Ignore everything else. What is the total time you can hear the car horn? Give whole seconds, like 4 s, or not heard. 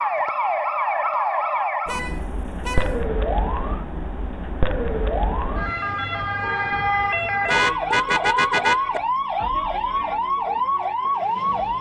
3 s.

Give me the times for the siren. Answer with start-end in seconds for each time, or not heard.
0.0-11.7.